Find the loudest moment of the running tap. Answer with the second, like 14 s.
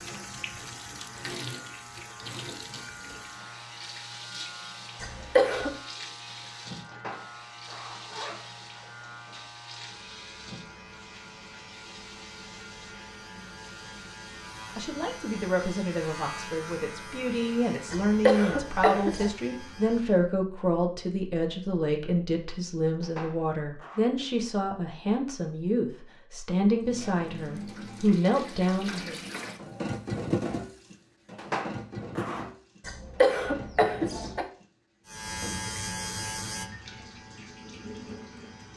30 s.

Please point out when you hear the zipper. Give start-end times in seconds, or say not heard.
6.9-8.7, 23.0-24.0, 31.4-32.5.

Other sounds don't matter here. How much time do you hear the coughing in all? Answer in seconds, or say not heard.
4 s.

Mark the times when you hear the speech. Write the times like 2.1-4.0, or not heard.
14.7-29.1.